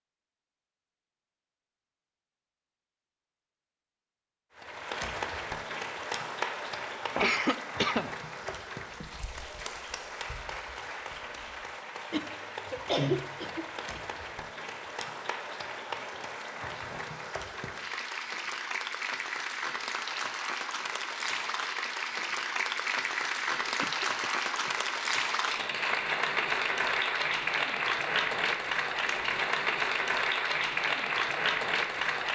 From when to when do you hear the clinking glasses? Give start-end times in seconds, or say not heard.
not heard.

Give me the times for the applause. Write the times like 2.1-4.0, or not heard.
4.5-32.3.